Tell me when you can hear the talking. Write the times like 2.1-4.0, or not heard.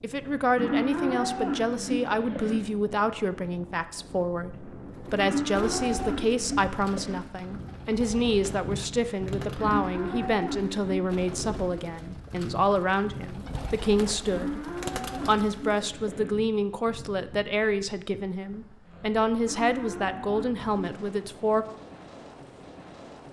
0.0-21.6.